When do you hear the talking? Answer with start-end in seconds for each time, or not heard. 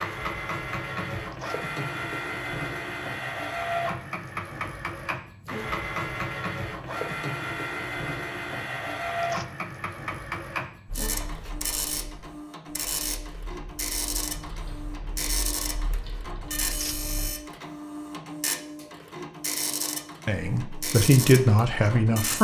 20.2-22.3.